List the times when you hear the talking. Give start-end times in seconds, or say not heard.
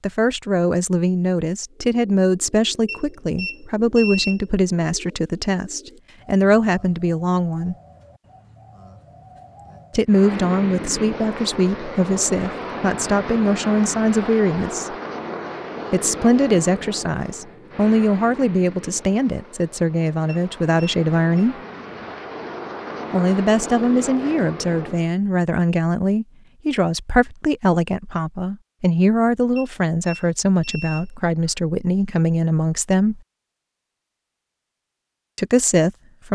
0.0-7.8, 9.9-14.9, 15.9-21.6, 23.1-33.2, 35.4-36.3.